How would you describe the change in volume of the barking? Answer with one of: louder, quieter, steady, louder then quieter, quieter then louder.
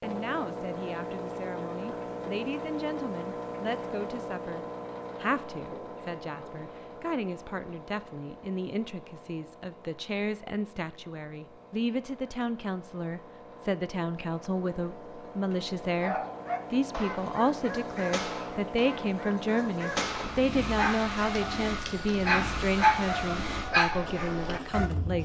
louder.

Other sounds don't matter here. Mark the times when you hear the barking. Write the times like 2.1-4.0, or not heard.
16.0-24.9.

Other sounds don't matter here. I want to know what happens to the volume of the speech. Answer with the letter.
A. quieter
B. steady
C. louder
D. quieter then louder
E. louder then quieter
C.